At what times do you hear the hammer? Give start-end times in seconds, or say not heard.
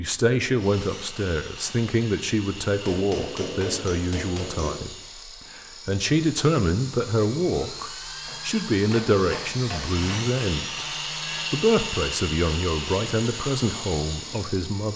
2.8-4.8, 8.2-10.3.